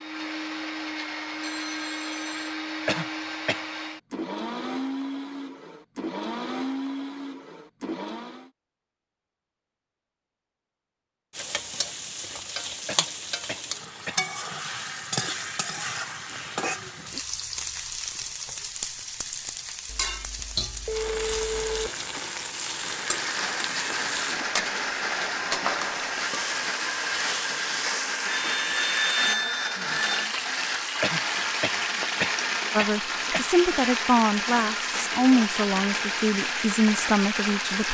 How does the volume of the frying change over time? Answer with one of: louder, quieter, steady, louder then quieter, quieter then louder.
steady.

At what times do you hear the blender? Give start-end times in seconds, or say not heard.
0.0-8.5, 22.7-37.8.